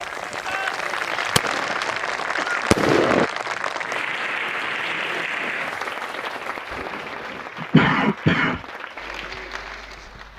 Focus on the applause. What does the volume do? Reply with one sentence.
The volume of the applause goes down.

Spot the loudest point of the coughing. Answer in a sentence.
The loudest moment of the coughing is at 8 seconds.